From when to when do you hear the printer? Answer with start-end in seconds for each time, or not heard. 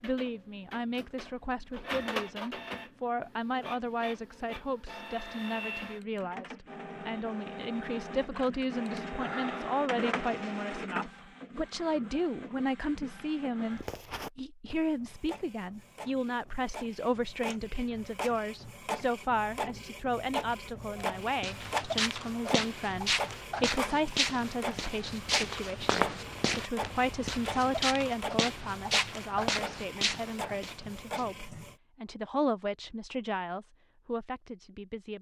0.0-31.8.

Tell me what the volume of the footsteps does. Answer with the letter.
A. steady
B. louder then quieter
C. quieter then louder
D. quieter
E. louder
A.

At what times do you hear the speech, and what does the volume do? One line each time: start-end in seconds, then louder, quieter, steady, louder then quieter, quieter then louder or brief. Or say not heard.
0.0-35.1 steady.